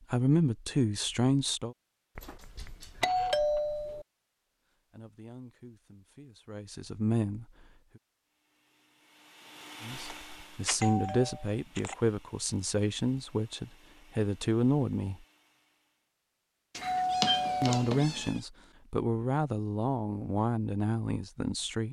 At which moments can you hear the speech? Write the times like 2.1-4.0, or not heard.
0.1-1.8, 4.9-7.5, 9.8-15.2, 17.6-21.8.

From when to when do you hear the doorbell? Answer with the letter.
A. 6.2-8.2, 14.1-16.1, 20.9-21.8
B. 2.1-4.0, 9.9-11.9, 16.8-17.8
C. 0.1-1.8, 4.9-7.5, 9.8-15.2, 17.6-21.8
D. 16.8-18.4
B.